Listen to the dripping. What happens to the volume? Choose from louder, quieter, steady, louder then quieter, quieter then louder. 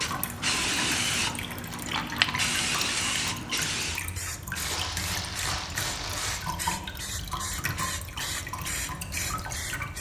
steady.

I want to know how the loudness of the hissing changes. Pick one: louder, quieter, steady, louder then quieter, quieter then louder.
quieter.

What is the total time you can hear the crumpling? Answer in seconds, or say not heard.
2 s.